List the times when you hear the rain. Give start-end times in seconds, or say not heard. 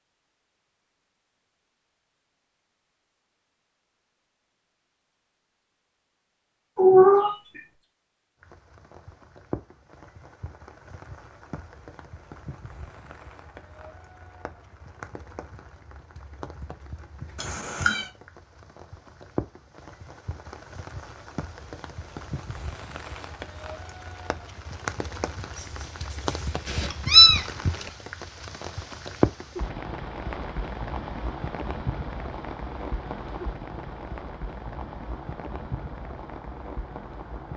8.4-37.5.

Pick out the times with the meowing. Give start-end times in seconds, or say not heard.
6.8-7.6, 17.4-18.1, 25.6-27.4.